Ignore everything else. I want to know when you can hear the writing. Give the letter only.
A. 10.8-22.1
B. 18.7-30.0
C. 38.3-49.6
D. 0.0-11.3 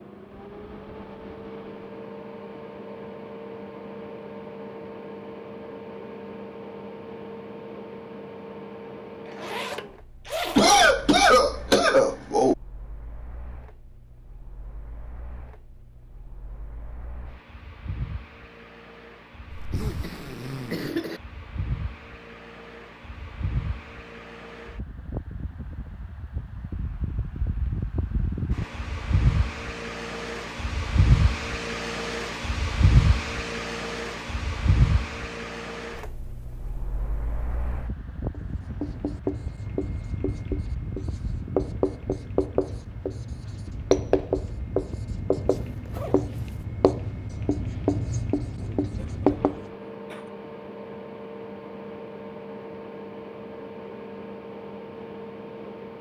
C.